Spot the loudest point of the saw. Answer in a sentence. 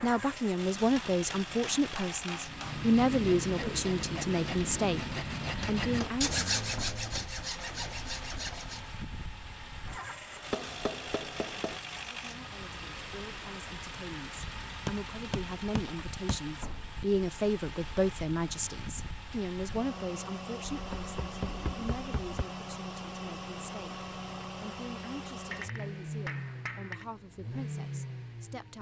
The loudest moment of the saw is at 6 seconds.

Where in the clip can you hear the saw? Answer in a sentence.
You can hear the saw from 2.5 to 8.9 s.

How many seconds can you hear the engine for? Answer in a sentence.
The engine can be heard for 29 seconds in total.